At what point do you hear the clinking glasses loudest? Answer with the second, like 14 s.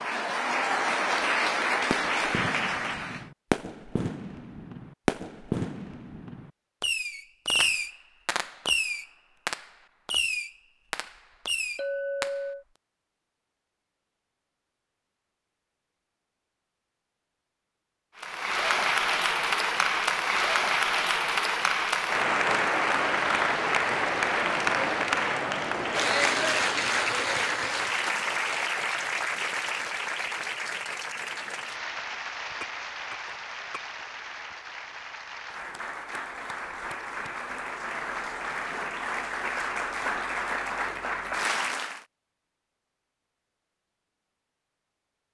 12 s.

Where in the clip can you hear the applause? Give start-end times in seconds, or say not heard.
0.0-3.3, 18.1-42.0.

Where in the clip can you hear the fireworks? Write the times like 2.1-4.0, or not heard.
1.9-12.3.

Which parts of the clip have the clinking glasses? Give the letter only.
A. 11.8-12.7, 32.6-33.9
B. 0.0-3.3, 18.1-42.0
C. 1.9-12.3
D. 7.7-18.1
A.